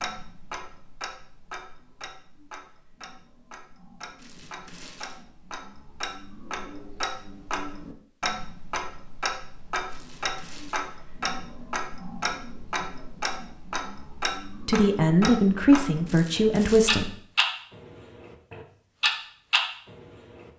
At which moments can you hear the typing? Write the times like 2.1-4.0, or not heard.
not heard.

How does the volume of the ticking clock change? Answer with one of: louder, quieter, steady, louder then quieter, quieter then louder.
louder.